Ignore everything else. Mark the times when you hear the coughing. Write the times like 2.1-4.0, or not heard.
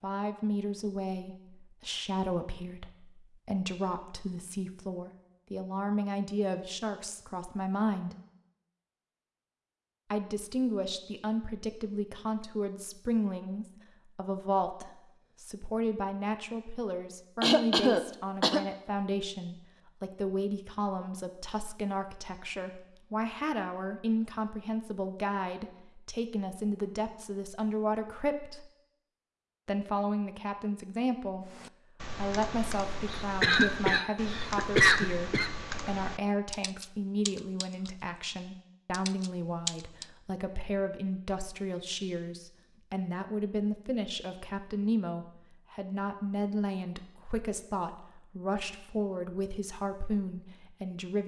17.4-18.6, 33.1-35.5.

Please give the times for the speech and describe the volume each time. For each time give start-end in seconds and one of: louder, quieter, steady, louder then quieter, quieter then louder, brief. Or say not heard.
0.0-8.2 steady
10.1-28.7 steady
29.6-51.2 steady.